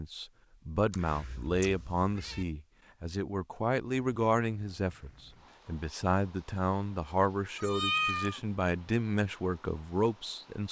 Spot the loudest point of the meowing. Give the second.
8 s.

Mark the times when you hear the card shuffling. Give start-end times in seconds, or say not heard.
not heard.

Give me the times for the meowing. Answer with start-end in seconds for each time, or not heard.
0.9-2.5, 7.5-8.4.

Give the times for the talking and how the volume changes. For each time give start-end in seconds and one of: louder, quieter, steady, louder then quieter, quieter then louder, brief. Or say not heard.
0.0-10.6 steady.